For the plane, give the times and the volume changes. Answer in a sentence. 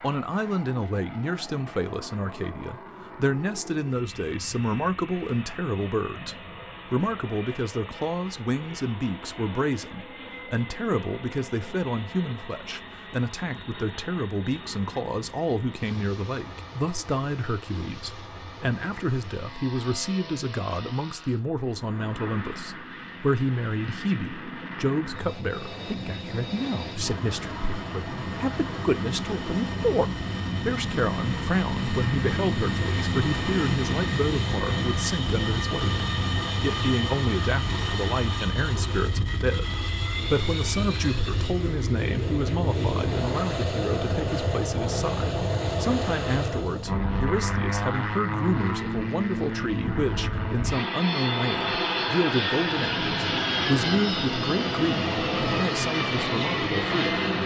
The plane can be heard from 0.0 to 57.4 s, getting louder.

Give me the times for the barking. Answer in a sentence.
You can't hear the barking here.